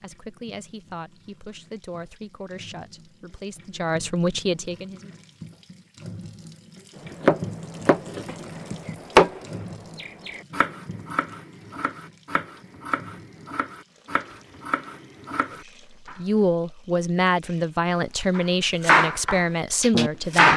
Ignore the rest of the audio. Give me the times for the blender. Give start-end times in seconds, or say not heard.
not heard.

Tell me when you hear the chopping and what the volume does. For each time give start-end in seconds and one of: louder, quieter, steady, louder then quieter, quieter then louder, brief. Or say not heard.
7.1-16.2 louder then quieter
18.4-20.5 brief.